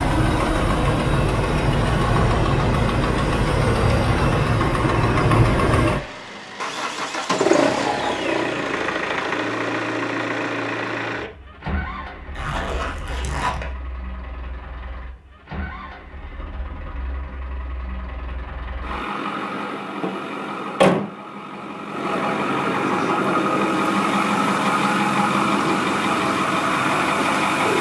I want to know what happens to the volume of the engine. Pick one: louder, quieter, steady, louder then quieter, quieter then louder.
quieter then louder.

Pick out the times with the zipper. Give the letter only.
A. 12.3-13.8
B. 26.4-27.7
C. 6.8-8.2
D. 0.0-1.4
A.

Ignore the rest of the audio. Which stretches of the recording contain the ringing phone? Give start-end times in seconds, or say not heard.
not heard.